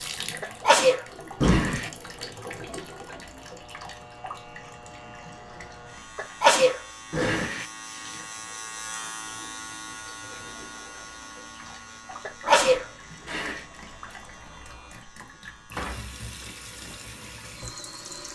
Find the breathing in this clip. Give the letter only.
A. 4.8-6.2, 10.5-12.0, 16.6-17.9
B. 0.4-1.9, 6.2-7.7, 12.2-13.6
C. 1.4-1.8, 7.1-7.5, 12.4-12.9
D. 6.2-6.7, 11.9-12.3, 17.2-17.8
C.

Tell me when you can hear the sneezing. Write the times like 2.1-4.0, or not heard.
0.4-1.9, 6.2-7.7, 12.2-13.6.